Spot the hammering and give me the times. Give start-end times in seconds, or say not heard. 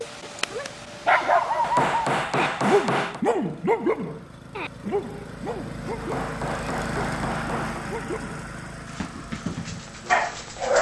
1.6-3.2, 6.0-7.8.